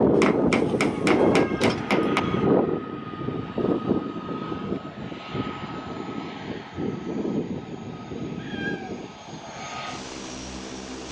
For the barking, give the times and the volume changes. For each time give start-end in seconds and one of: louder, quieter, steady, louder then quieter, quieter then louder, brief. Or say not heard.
not heard.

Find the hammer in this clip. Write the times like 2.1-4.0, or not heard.
0.2-2.2.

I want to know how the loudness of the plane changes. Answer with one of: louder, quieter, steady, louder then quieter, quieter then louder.
quieter.